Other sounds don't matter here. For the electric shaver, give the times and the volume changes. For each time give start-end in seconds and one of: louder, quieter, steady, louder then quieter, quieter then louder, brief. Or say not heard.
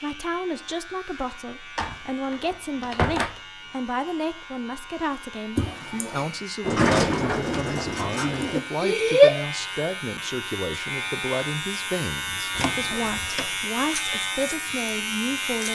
0.0-15.7 louder.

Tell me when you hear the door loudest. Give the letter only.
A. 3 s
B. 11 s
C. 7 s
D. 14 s
C.